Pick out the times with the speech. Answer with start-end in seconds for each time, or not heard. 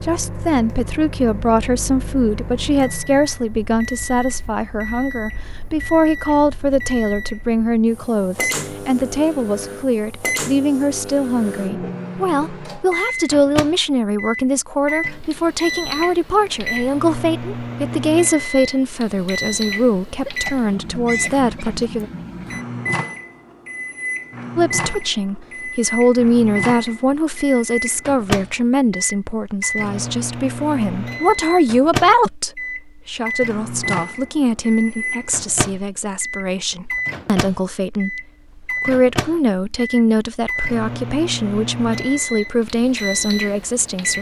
0.0-22.1, 24.6-44.1.